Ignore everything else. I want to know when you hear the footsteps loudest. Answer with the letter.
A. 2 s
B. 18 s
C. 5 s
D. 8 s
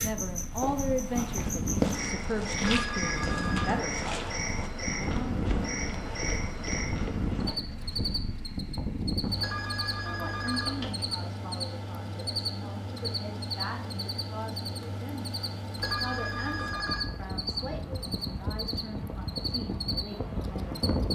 A.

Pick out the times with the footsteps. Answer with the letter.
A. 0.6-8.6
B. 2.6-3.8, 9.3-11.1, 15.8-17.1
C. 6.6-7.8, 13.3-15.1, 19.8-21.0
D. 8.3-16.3
A.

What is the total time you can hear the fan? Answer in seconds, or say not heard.
21 s.